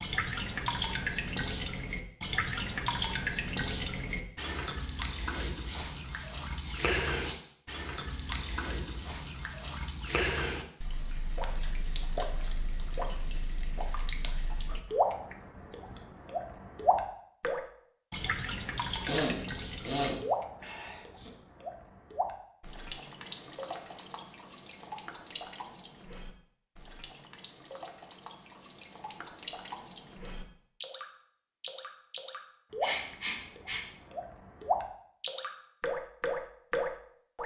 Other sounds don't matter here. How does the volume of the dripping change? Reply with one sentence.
The loudness of the dripping goes down, then up.